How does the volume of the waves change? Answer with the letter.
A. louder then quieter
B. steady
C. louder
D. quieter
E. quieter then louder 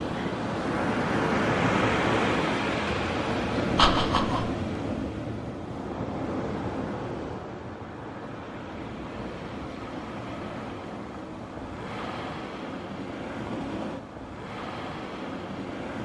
D.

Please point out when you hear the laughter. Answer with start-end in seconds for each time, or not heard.
3.8-4.5.